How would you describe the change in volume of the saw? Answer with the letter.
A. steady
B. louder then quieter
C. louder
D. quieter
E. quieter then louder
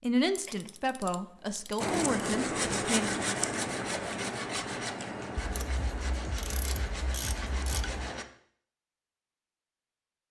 D.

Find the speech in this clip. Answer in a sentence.
You can hear the speech from 0.0 to 3.1 s.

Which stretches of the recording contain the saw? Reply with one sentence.
You can hear the saw from 1.8 to 8.2 s.